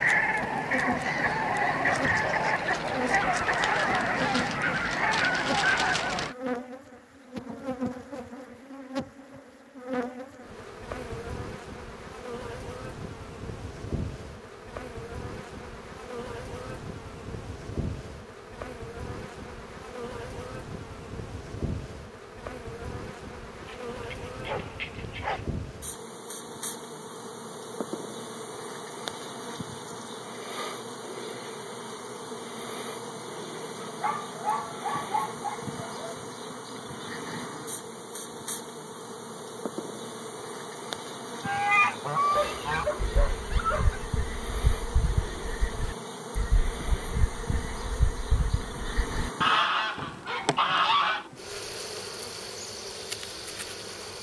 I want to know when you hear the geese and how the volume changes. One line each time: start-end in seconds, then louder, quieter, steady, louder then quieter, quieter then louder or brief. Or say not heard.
0.0-6.3 steady
41.4-51.2 quieter then louder.